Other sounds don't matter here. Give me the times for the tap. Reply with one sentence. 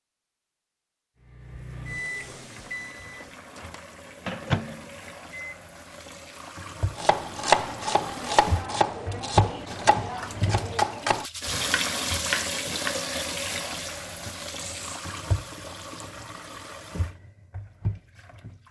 You can hear the tap from 1.4 to 18.6 s.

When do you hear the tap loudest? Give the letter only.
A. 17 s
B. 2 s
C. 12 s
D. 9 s
C.